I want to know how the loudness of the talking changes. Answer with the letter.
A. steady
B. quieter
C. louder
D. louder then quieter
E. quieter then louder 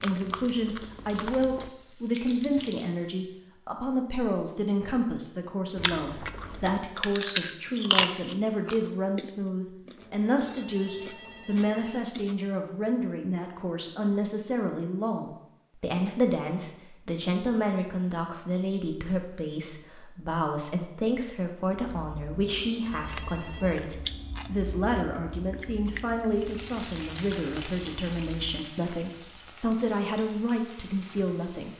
A.